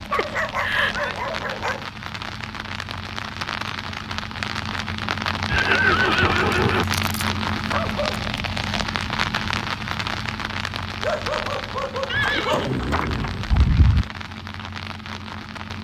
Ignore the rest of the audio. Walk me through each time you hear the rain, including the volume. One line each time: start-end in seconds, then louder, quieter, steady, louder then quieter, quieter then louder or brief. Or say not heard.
0.0-15.7 louder then quieter.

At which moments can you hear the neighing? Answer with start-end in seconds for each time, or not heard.
0.1-1.1, 5.5-6.8, 12.1-14.1.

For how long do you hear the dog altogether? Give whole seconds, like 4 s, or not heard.
5 s.